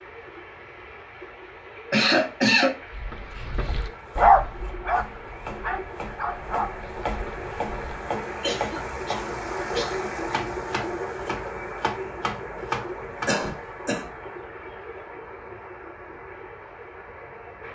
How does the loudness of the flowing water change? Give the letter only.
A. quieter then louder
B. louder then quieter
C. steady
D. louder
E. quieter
B.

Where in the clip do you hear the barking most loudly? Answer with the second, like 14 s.
4 s.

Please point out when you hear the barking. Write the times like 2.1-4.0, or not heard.
2.9-8.0.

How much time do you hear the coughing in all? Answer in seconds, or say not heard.
3 s.